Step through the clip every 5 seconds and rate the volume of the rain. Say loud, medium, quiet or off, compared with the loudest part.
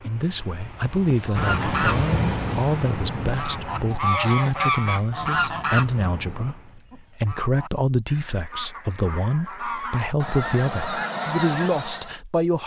loud, medium, off.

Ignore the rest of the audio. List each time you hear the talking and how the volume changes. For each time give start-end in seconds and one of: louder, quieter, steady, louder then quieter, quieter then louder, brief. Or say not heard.
0.1-12.6 steady.